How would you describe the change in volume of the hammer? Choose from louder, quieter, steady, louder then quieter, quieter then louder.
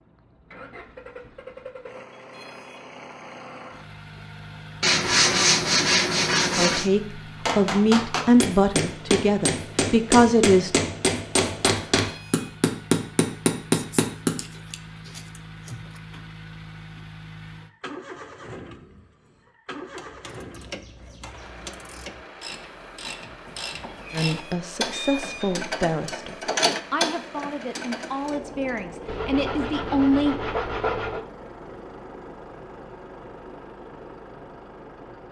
louder.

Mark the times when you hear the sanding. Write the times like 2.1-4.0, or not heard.
4.8-6.9, 13.7-15.8, 29.1-31.2.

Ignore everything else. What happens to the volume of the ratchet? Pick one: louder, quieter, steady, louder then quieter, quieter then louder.
louder.